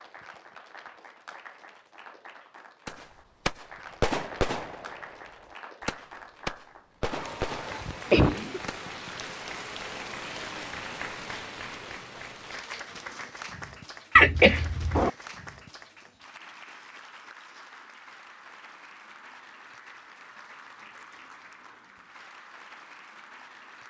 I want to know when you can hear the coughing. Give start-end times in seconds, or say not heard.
7.0-8.6, 14.2-15.1.